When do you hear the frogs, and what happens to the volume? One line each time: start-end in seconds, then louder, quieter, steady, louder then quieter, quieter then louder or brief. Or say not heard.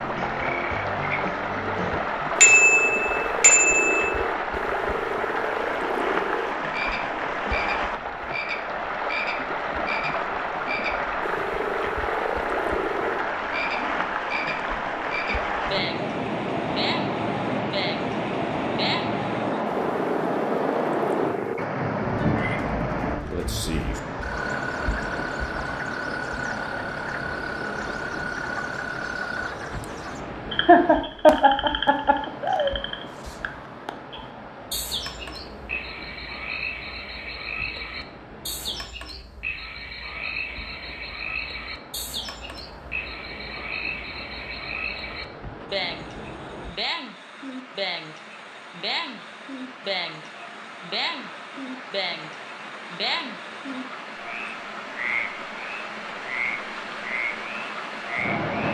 0.0-58.4 steady.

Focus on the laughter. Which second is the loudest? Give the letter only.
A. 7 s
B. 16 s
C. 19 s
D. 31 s
D.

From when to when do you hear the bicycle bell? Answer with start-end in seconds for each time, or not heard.
2.4-4.1.